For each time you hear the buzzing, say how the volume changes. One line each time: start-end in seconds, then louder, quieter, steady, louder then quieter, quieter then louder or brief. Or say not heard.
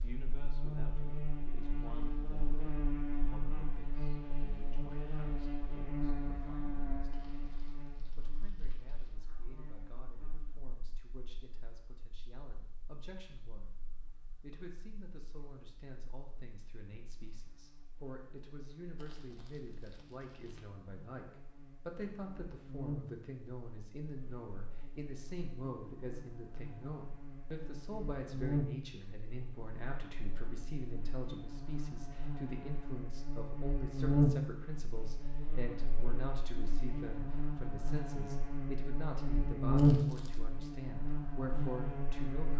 0.0-42.5 quieter then louder.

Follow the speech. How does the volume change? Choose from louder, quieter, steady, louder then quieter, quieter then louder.
louder.